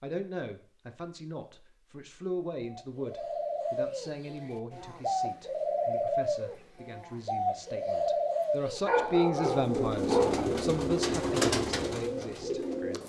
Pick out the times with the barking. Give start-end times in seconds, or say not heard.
8.8-10.4.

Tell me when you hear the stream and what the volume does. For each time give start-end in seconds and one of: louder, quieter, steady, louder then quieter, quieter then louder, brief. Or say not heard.
not heard.